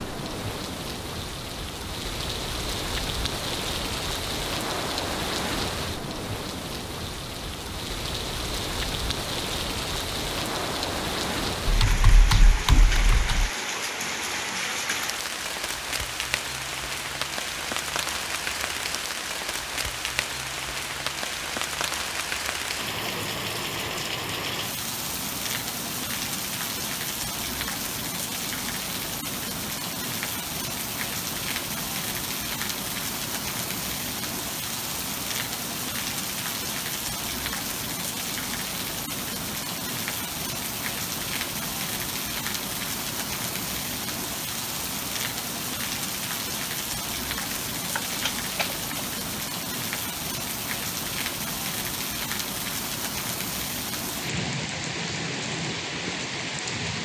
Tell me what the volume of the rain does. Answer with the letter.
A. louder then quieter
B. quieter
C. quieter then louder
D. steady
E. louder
D.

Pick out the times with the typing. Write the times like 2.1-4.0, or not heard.
11.7-13.5, 47.8-49.1.